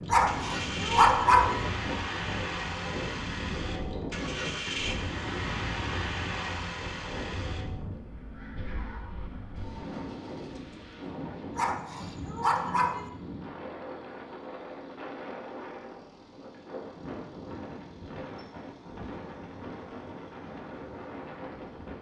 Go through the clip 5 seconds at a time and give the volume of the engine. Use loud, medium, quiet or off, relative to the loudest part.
loud, loud, quiet, quiet, quiet.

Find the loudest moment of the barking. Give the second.
1 s.